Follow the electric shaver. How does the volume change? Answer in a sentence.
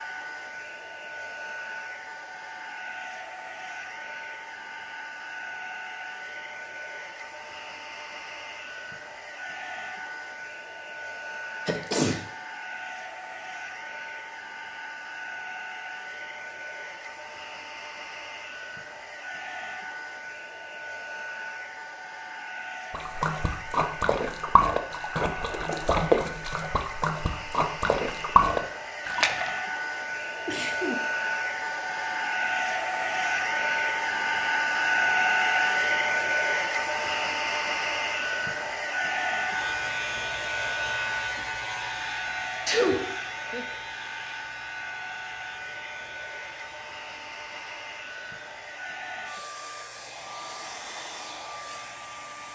The loudness of the electric shaver goes down.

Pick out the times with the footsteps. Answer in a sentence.
The footsteps can't be heard in this clip.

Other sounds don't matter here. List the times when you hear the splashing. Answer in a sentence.
You can hear the splashing from 22.9 to 29.5 s.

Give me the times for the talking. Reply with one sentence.
You can't hear the talking here.